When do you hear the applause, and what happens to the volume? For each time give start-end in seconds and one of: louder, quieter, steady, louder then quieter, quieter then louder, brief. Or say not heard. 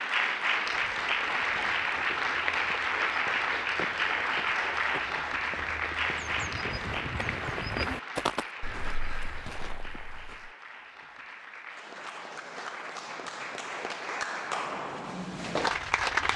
0.0-16.3 quieter then louder.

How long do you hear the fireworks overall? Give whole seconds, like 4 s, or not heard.
not heard.